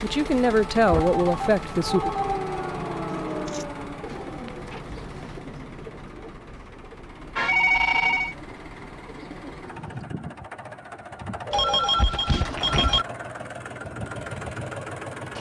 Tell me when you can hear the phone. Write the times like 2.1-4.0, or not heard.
0.8-2.4, 7.3-8.3, 11.5-13.1.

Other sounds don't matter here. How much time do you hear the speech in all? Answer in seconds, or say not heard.
2 s.